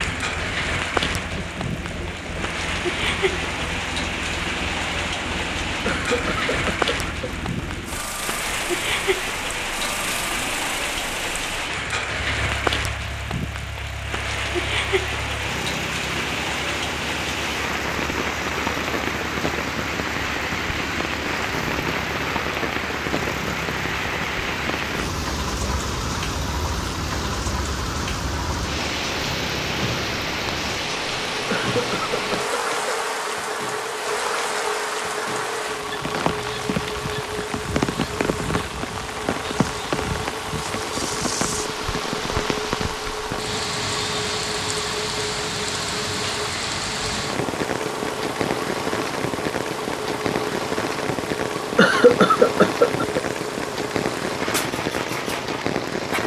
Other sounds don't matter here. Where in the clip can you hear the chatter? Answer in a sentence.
The chatter can't be heard in this clip.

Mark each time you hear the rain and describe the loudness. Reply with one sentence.
The rain can be heard from 0.0 to 56.2 s, at a steady volume.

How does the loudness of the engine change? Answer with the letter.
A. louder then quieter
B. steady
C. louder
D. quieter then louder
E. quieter
B.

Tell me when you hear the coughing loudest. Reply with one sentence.
The loudest moment of the coughing is at 52 seconds.